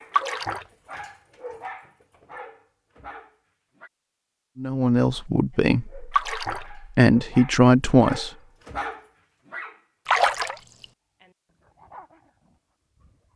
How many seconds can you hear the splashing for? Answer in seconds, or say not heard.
2 s.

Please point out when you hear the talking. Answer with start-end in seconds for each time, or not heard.
4.5-8.3.